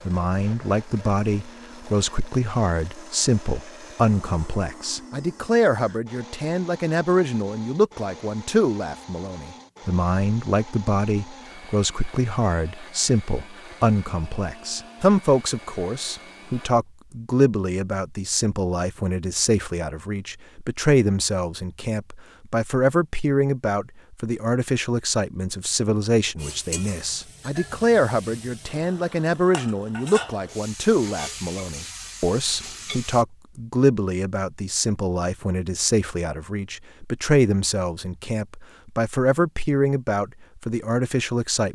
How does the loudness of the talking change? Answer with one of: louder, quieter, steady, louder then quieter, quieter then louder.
steady.